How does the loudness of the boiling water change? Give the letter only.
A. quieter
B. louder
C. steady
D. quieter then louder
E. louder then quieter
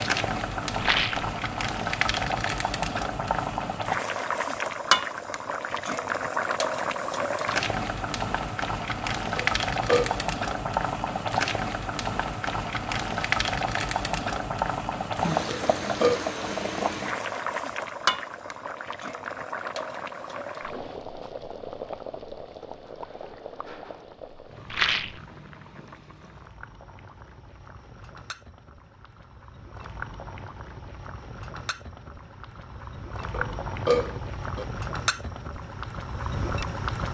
D.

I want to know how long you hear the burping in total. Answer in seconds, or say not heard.
3 s.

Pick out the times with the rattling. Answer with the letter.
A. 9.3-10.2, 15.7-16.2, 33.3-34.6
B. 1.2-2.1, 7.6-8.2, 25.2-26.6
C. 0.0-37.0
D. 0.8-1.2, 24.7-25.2
D.